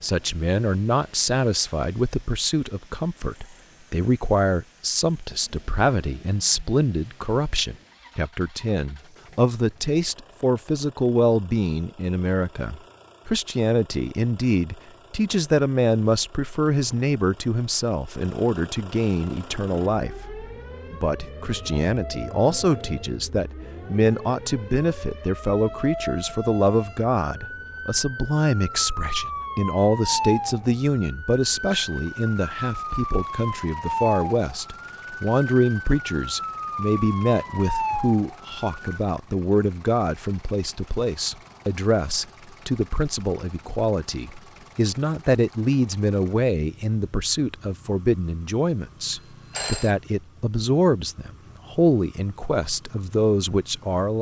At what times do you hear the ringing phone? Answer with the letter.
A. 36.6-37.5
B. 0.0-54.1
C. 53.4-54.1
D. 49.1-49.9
D.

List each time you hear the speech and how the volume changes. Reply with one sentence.
You can hear the speech from 0.0 to 54.1 s, at a steady volume.